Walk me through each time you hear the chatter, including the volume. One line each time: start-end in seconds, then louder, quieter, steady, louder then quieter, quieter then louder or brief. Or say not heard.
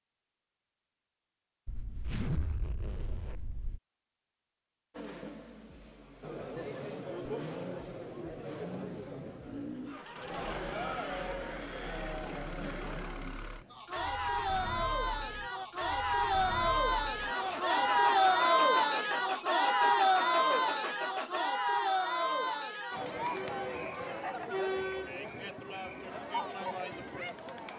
6.2-27.7 louder then quieter.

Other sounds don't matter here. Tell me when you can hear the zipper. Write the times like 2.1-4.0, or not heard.
1.6-3.8, 17.2-18.6.